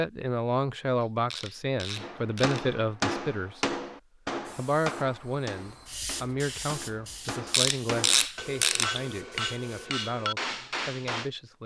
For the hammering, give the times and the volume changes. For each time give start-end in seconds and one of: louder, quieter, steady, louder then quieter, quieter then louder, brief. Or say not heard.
1.9-11.3 quieter then louder.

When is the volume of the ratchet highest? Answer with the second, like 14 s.
8 s.